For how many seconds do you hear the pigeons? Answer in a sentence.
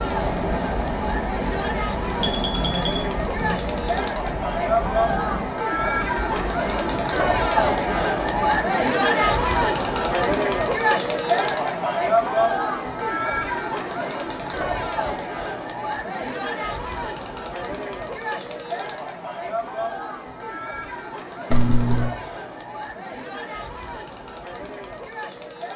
You can't hear the pigeons here.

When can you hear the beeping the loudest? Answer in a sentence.
The loudest moment of the beeping is at 22 seconds.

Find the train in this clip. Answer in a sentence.
The train can be heard from 0.0 to 8.6 s.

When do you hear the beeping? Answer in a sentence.
You can hear the beeping from 2.2 to 3.0 s and from 21.5 to 22.1 s.